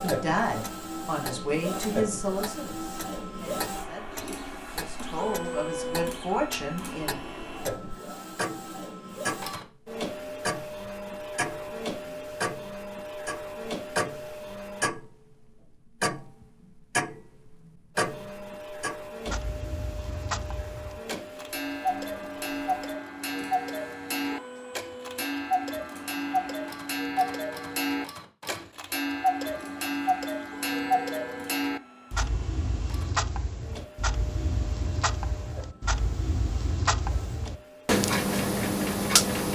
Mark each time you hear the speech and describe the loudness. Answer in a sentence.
You can hear the speech from 0.0 to 7.2 s, getting quieter then louder.